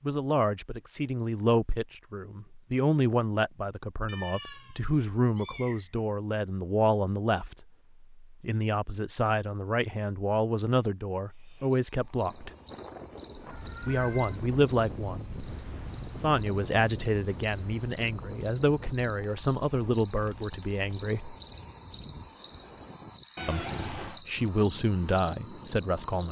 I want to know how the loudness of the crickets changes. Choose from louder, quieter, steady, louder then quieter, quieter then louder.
louder.